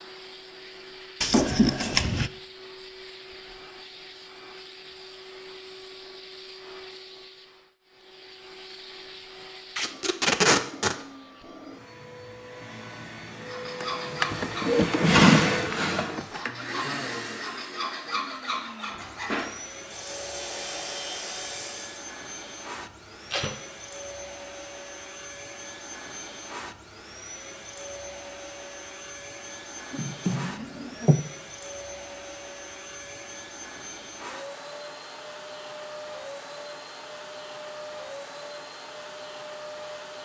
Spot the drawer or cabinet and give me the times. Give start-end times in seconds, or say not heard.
1.2-2.3, 13.8-16.4, 29.9-31.2.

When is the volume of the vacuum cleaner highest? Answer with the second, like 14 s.
15 s.